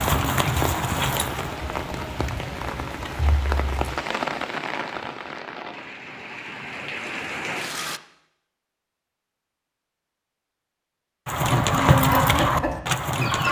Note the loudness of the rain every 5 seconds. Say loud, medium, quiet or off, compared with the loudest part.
loud, loud, off.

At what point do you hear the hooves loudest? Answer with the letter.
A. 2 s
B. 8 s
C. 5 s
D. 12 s
D.